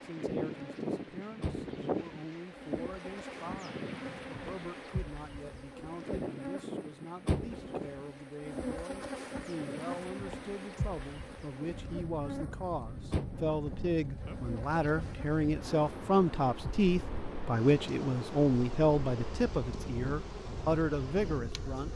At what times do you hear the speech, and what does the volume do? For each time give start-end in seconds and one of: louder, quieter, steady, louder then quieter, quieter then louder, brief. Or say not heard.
0.0-21.9 louder.